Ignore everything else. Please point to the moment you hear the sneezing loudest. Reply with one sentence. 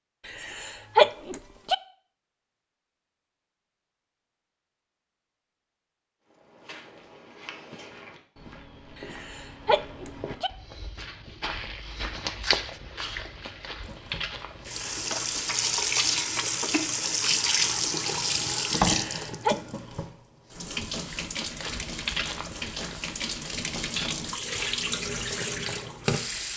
The loudest moment of the sneezing is at 1 second.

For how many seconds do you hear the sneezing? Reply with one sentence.
The sneezing can be heard for 4 seconds in total.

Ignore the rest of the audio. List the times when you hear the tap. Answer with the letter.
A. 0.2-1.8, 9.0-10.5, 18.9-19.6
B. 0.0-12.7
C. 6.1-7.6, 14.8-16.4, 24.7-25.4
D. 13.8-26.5
D.